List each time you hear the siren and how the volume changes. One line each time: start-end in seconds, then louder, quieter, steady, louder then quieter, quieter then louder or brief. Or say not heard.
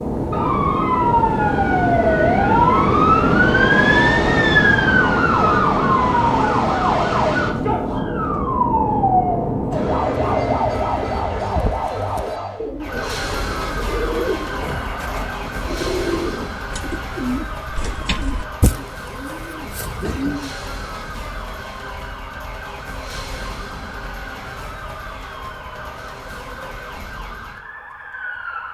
0.0-28.6 quieter.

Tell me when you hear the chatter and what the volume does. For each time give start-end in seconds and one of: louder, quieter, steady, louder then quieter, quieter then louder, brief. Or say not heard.
not heard.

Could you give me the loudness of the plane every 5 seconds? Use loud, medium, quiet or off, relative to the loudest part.
loud, loud, medium, off, off, off.